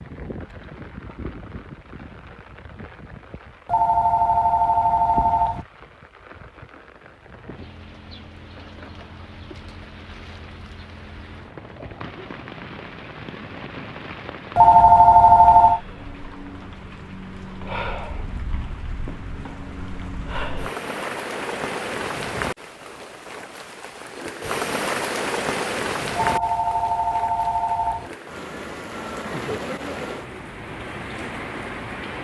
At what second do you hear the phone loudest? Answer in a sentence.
The loudest moment of the phone is at 15 seconds.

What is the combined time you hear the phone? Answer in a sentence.
You can hear the phone for 5 seconds altogether.